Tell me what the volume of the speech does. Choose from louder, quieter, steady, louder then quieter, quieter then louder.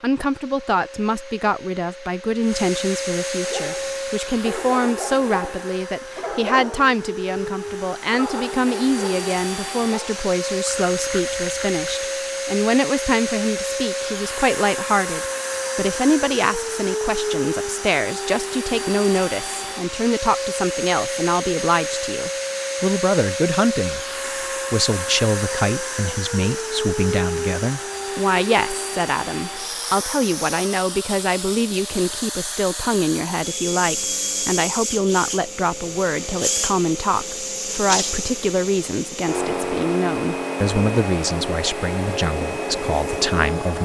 steady.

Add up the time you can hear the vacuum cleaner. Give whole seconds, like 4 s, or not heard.
44 s.